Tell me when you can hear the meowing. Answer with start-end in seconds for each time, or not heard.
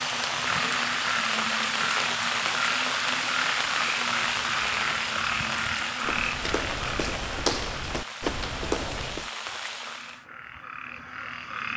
not heard.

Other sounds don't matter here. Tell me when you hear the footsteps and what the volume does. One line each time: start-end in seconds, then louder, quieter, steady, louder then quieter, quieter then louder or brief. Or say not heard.
4.1-9.3 louder.